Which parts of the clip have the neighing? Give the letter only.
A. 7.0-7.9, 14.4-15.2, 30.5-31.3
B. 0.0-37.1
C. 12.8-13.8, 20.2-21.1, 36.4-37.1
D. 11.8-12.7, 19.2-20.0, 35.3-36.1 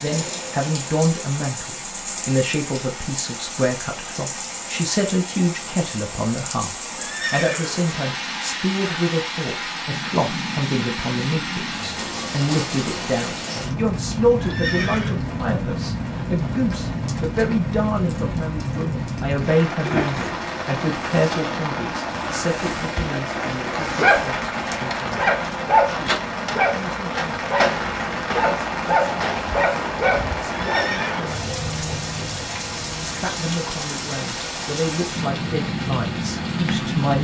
A.